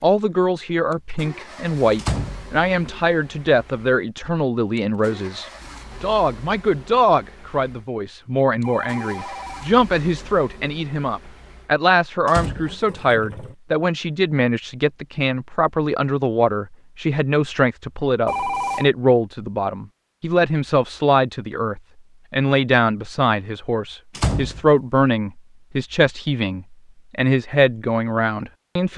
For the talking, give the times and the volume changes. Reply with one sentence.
You can hear the talking from 0.0 to 28.9 s, at a steady volume.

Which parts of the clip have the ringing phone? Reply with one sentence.
The ringing phone can be heard from 8.6 to 9.8 s and from 18.2 to 18.9 s.